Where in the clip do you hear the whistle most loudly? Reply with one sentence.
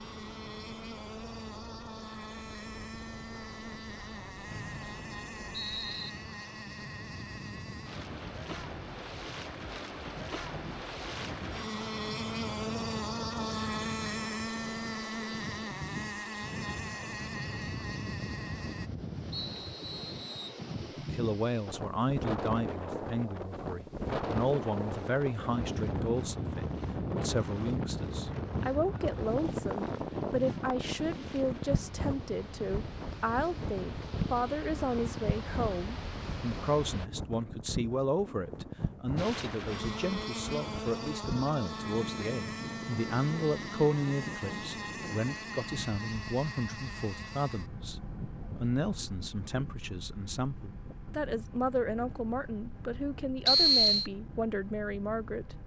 The volume of the whistle peaks at 54 seconds.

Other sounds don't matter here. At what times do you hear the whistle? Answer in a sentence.
The whistle can be heard from 4.5 to 6.1 s, from 19.3 to 20.6 s and from 53.5 to 54.1 s.